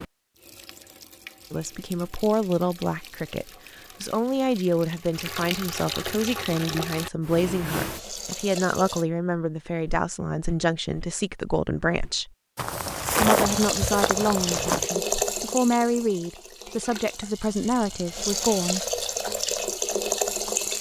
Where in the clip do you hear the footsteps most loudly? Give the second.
13 s.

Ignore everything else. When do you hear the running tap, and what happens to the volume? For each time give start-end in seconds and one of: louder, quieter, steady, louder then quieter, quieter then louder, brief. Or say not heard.
0.0-9.1 louder
13.4-20.7 quieter then louder.